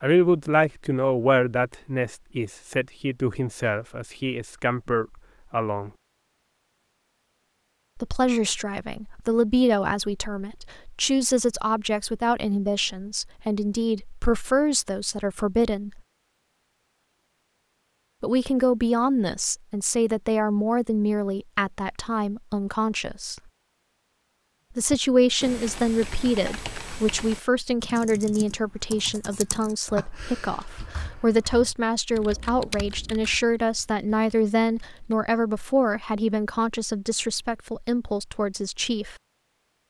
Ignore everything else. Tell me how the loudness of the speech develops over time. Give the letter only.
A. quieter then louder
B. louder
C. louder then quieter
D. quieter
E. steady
E.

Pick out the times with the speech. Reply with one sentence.
You can hear the speech from 0.0 to 5.9 s, from 8.0 to 16.0 s, from 18.2 to 23.4 s and from 24.8 to 39.1 s.